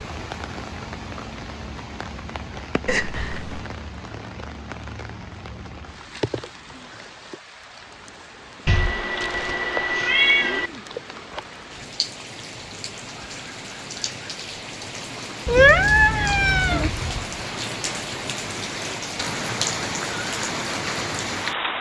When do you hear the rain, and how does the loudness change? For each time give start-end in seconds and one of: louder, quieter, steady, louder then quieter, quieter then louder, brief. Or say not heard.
0.0-21.7 louder.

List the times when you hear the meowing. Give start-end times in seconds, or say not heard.
2.9-3.6, 8.7-10.7, 15.4-16.9.